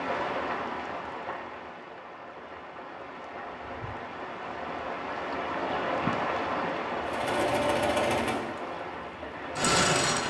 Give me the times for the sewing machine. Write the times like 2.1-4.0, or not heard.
7.0-10.2.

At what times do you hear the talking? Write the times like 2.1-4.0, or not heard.
not heard.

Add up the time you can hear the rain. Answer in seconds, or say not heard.
10 s.